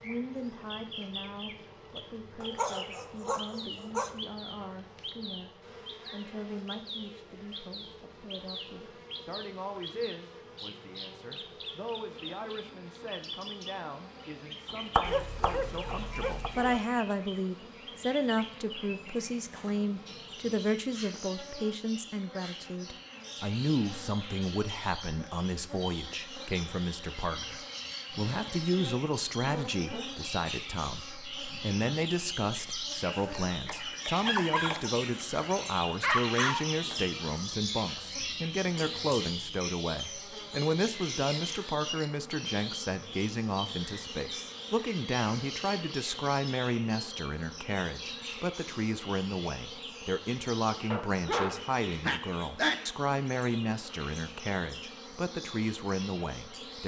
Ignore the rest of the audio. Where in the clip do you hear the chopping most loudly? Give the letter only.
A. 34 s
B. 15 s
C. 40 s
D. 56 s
B.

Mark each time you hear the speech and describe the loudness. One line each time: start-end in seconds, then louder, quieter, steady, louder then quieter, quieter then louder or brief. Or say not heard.
0.0-56.8 louder.